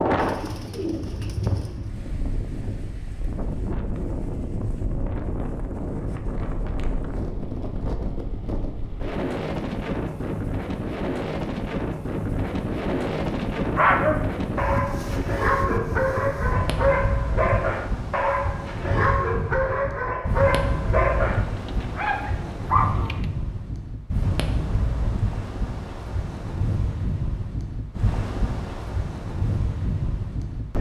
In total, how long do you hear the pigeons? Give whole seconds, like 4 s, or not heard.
4 s.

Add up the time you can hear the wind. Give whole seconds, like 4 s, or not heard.
31 s.